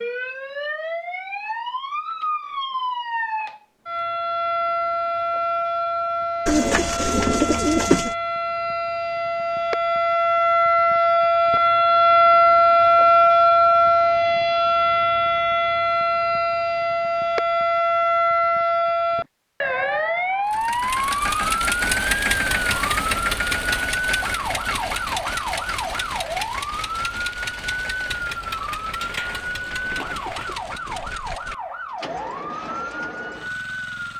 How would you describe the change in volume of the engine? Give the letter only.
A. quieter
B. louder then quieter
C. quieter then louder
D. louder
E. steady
A.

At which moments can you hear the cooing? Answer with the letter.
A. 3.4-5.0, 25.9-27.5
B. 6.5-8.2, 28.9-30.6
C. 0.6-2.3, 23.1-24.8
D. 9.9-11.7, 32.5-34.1
B.